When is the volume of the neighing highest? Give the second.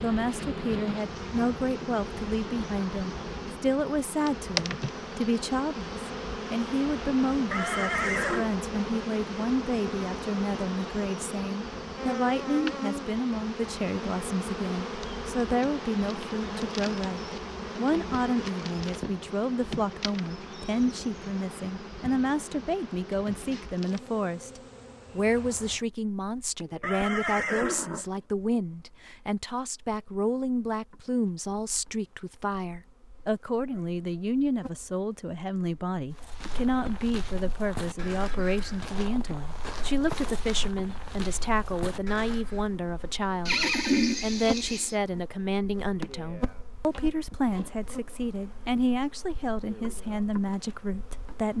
44 s.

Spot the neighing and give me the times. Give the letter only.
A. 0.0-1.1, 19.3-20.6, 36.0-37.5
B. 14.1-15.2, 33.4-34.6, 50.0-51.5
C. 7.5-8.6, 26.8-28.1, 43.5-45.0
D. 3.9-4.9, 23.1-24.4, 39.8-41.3
C.